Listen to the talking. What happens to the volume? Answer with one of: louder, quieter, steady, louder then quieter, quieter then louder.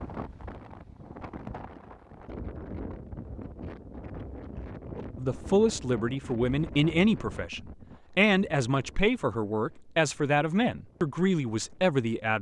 steady.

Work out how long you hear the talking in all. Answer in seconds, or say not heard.
7 s.